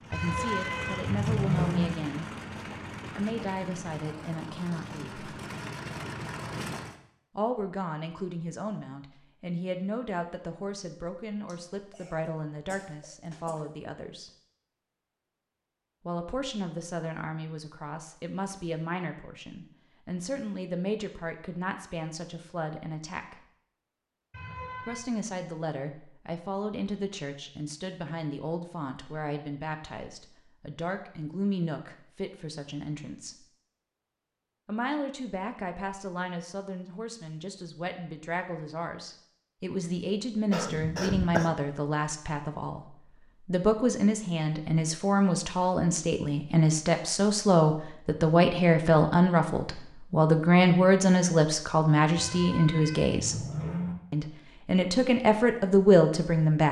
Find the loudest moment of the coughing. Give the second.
41 s.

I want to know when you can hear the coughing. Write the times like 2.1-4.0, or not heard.
11.4-13.7, 40.5-41.5.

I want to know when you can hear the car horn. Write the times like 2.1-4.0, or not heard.
0.1-1.9, 24.3-25.0, 52.1-54.0.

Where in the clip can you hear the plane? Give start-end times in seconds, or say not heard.
0.0-7.0.